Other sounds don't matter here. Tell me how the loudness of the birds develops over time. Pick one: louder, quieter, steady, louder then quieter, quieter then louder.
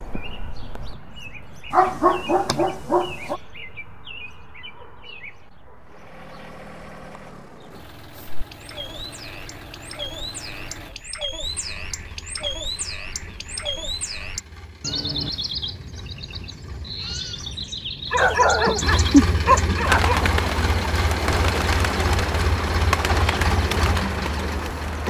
louder.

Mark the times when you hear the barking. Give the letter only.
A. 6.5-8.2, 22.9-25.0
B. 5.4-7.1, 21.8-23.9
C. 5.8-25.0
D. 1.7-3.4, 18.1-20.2
D.